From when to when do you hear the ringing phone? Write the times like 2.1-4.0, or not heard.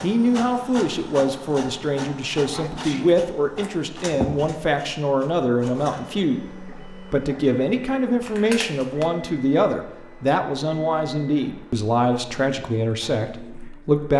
not heard.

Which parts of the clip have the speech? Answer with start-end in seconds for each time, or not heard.
0.0-14.1.